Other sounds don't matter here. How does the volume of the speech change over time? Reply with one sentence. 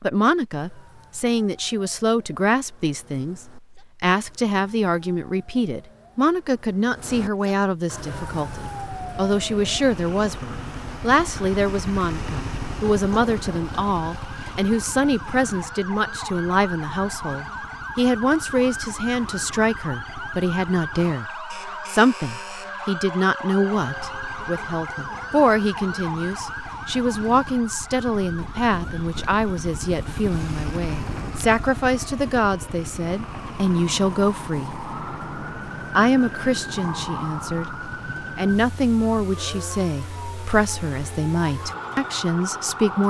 The volume of the speech stays about the same.